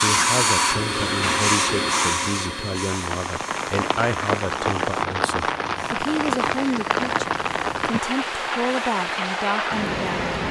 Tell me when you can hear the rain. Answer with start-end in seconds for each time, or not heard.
2.9-10.4.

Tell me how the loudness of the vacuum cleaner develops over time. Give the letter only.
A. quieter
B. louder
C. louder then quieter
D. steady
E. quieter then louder
A.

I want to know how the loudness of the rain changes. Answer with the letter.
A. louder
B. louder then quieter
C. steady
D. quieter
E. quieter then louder
C.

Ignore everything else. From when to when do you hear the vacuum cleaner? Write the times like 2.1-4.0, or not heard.
0.0-10.4.